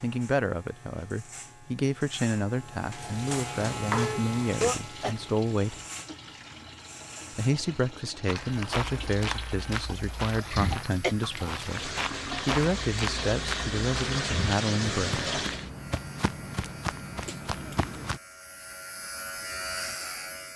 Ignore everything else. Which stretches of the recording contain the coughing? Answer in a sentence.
The coughing can be heard from 4.0 to 5.2 s, from 10.5 to 11.2 s and from 17.2 to 17.9 s.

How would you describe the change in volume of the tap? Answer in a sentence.
The loudness of the tap goes up.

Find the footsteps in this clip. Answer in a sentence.
You can hear the footsteps from 8.2 to 18.2 s.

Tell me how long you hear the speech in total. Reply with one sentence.
The speech can be heard for 14 seconds in total.